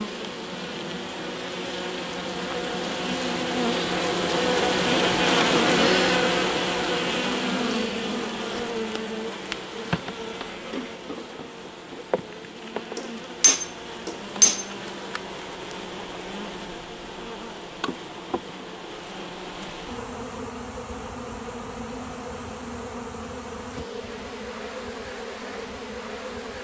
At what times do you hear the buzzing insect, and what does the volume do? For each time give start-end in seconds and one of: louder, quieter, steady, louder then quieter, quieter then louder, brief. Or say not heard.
0.0-26.5 quieter.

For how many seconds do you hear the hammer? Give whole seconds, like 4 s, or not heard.
2 s.